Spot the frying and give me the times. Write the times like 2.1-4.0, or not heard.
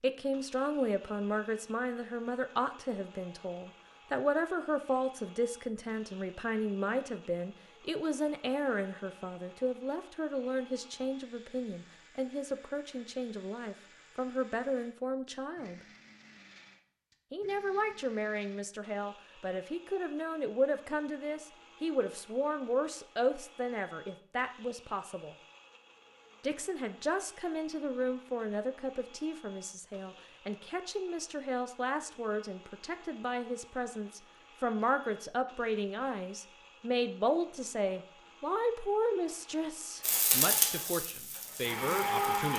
40.0-42.5.